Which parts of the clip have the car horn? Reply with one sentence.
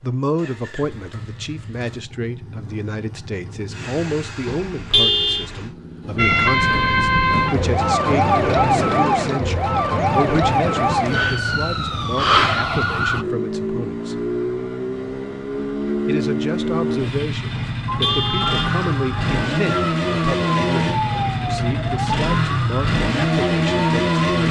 You can hear the car horn from 4.5 to 5.5 s and from 17.6 to 18.6 s.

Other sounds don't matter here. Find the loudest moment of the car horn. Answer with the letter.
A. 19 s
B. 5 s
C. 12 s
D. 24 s
B.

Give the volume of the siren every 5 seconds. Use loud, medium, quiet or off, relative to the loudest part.
off, loud, loud, medium, medium.